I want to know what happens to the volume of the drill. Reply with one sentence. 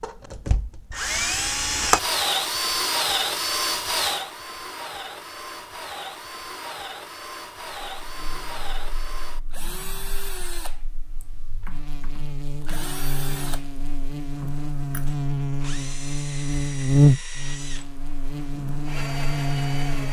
The volume of the drill goes down.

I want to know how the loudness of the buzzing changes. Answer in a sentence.
The loudness of the buzzing goes up, then down.